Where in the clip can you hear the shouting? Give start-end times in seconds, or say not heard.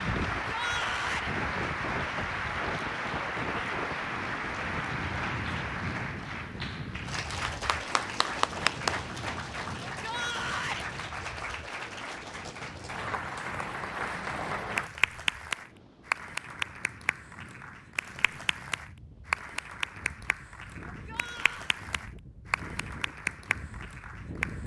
0.5-1.3, 9.8-10.8, 20.9-21.8.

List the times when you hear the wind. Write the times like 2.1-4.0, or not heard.
0.0-24.6.